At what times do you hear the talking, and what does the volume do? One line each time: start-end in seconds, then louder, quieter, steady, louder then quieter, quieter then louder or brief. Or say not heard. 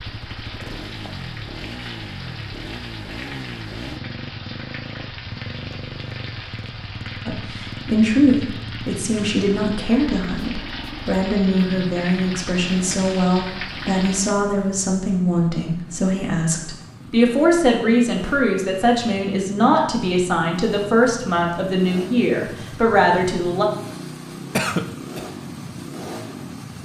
7.2-23.6 steady.